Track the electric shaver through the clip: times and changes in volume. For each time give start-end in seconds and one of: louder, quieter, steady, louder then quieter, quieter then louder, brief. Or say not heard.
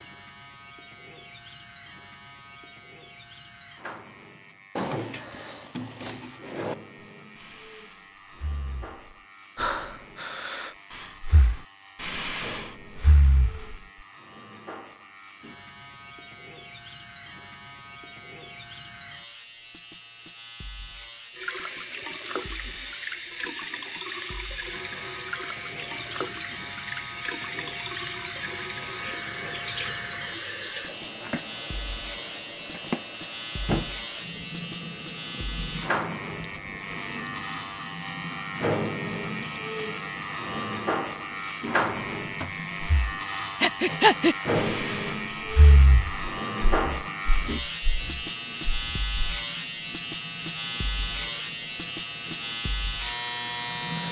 0.0-54.0 louder.